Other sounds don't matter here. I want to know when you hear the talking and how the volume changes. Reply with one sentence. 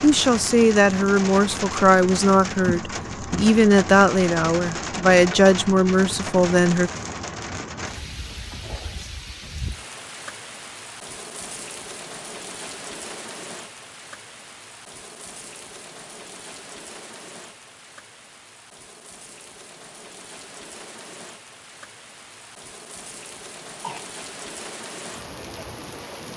The talking can be heard from 0.0 to 6.9 s, at a steady volume.